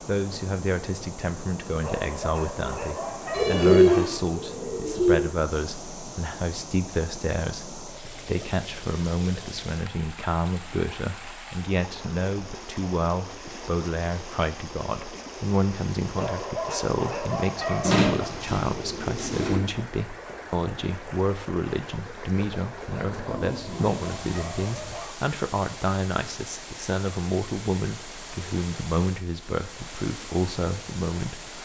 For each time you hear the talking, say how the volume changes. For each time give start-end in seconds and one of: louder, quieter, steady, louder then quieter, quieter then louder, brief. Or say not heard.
0.0-31.5 steady.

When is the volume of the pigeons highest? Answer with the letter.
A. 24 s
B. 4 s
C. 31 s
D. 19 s
B.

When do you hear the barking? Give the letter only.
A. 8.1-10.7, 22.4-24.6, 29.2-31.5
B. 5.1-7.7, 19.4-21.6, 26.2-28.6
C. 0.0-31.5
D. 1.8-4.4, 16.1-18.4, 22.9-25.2
D.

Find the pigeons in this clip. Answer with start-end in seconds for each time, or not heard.
3.3-5.2, 17.9-19.6, 23.0-24.9.